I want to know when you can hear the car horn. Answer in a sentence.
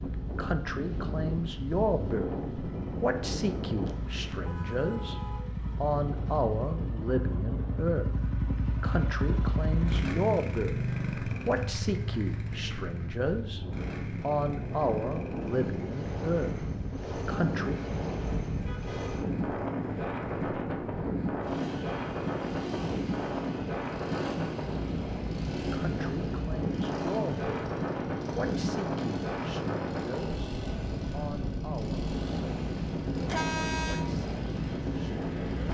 The car horn can be heard from 3.9 to 5.5 s, from 18.4 to 19.2 s and from 33.2 to 34.0 s.